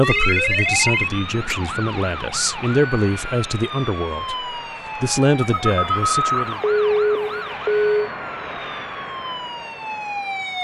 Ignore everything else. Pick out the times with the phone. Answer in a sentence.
The phone can be heard from 0.1 to 1.6 s and from 5.4 to 7.9 s.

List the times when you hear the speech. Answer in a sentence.
The speech can be heard from 0.0 to 6.6 s.